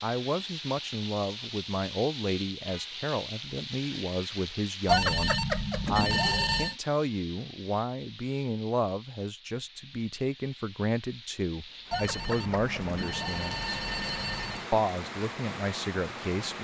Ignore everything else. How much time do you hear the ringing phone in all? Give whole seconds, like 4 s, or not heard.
5 s.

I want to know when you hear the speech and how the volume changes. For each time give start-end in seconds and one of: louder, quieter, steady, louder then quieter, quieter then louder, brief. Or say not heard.
0.0-13.8 steady
14.7-16.6 brief.